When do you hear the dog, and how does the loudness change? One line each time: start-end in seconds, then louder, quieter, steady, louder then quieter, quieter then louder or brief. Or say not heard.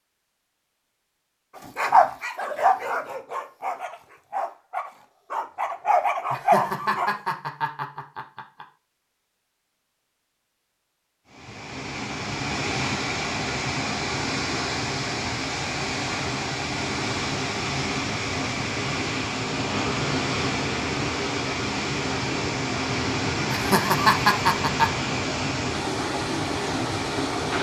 1.8-7.1 quieter then louder.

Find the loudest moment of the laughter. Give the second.
24 s.